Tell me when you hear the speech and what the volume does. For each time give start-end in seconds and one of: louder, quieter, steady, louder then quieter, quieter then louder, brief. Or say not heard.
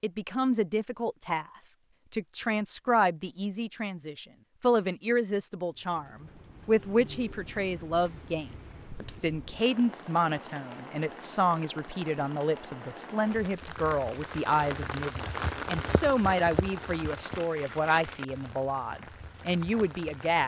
0.0-20.4 steady.